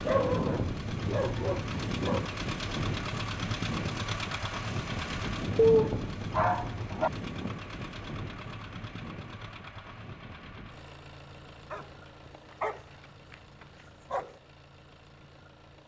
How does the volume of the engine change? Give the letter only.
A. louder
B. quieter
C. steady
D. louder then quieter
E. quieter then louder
B.